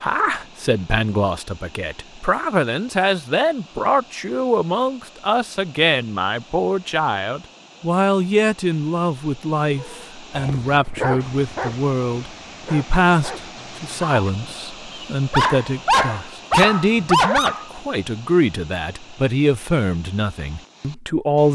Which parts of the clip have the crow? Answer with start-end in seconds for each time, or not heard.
not heard.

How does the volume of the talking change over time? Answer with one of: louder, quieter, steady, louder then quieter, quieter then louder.
steady.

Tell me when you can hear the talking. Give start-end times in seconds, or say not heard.
0.0-21.5.